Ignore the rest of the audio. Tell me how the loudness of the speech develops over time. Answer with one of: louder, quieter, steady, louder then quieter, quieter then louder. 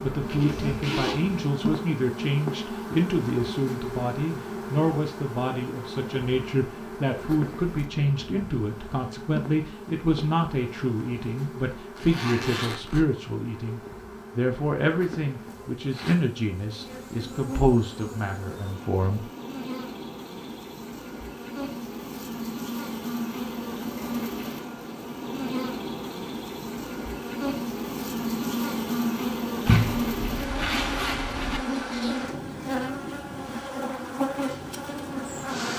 steady.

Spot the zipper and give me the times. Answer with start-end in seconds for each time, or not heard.
0.2-1.4, 11.9-13.1, 29.6-31.6.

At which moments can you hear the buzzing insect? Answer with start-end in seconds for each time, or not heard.
0.0-35.7.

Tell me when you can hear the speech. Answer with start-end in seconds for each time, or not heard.
0.0-19.2.